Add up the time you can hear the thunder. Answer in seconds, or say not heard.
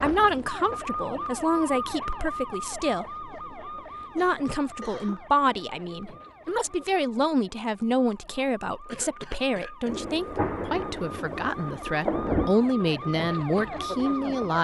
3 s.